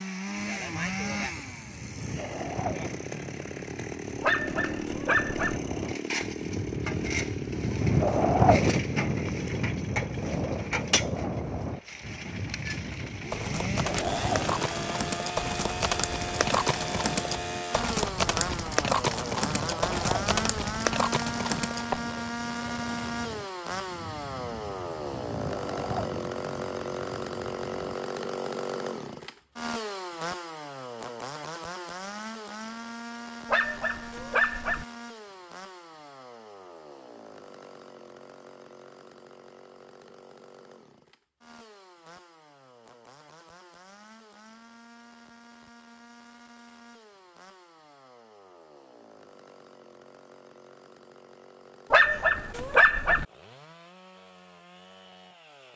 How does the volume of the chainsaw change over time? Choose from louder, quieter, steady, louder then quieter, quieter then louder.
quieter.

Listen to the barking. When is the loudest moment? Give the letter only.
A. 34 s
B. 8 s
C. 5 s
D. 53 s
D.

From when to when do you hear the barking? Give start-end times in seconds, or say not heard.
4.2-5.6, 33.5-34.9, 51.9-53.2.